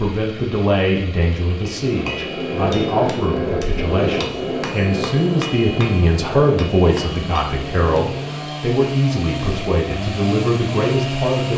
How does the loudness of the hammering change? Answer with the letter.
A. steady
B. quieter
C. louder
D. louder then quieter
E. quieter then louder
B.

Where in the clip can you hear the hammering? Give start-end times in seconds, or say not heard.
1.6-8.6.